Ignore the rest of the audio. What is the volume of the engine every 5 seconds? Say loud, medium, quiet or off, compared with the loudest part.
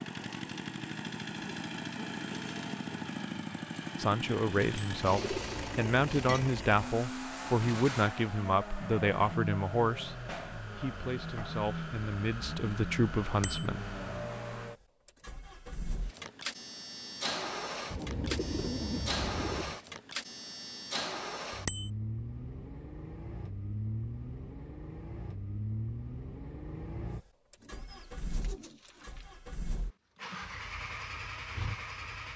loud, loud, loud, loud, loud, medium, loud.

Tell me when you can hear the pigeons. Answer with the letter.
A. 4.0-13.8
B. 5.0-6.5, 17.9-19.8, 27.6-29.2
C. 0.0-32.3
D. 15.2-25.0
B.